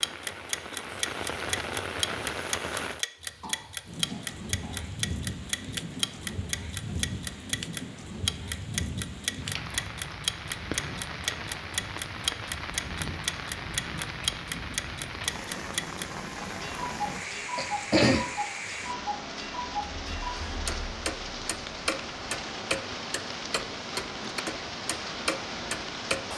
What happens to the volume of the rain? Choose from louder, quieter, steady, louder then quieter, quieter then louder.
steady.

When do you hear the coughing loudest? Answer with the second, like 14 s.
18 s.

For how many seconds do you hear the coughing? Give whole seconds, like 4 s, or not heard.
3 s.